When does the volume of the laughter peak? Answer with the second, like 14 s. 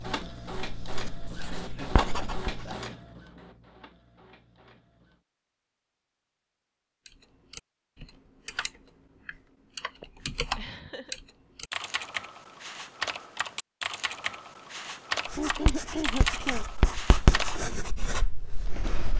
16 s.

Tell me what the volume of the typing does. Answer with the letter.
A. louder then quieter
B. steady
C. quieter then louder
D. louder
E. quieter
D.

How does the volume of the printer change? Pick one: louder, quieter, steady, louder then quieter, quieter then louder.
quieter.